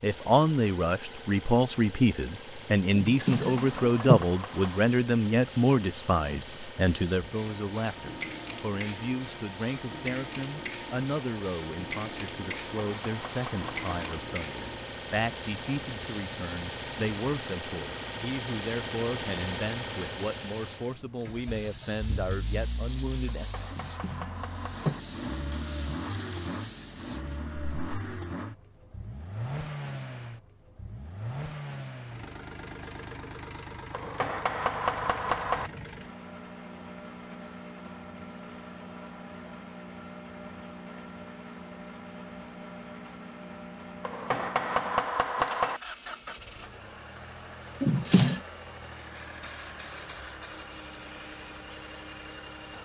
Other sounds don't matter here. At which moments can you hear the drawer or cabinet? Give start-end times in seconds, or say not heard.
3.0-4.2, 23.7-25.0, 47.8-48.4.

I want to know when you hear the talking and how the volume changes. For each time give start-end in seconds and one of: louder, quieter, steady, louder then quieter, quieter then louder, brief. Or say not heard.
0.0-23.4 quieter.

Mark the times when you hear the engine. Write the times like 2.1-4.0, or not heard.
0.0-52.8.